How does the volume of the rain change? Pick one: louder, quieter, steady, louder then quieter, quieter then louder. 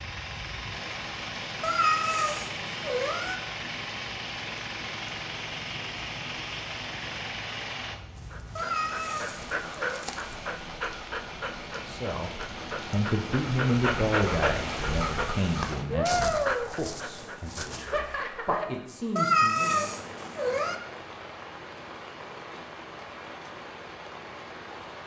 louder then quieter.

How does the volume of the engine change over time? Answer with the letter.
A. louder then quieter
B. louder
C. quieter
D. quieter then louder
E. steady
E.